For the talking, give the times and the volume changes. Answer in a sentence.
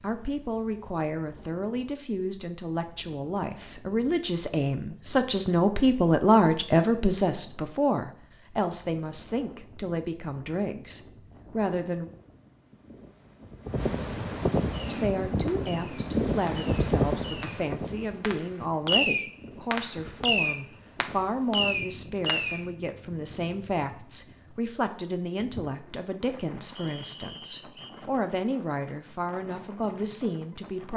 You can hear the talking from 0.0 to 12.1 s, getting louder then quieter; and from 14.8 to 30.9 s, at a steady volume.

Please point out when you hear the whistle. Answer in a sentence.
You can hear the whistle from 26.8 to 27.9 s.